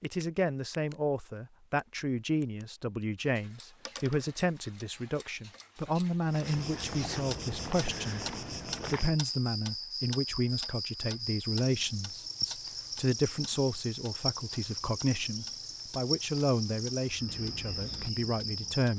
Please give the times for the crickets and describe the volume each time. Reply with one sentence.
You can hear the crickets from 6.3 to 18.9 s, at a steady volume.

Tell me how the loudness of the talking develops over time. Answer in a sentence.
The loudness of the talking stays about the same.